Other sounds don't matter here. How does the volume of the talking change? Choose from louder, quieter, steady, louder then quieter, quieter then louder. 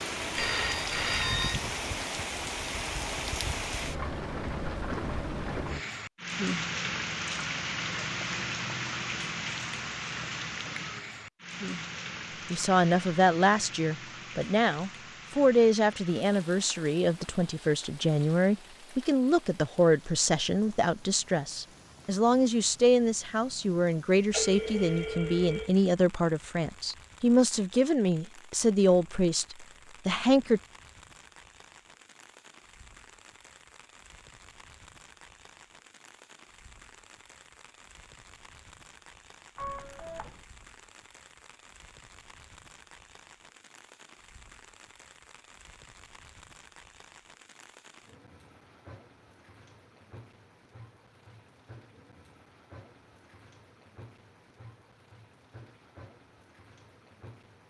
steady.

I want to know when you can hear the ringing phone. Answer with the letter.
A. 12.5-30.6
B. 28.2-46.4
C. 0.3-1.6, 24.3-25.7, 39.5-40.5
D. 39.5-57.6
C.